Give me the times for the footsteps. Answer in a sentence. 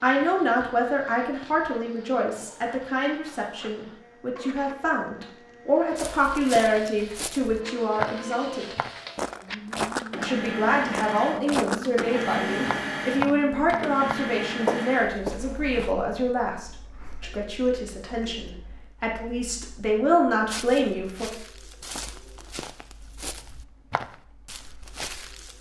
You can hear the footsteps from 6.0 to 15.9 s and from 20.4 to 25.5 s.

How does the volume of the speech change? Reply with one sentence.
The loudness of the speech stays about the same.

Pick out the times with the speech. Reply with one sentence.
You can hear the speech from 0.0 to 8.8 s and from 10.2 to 21.3 s.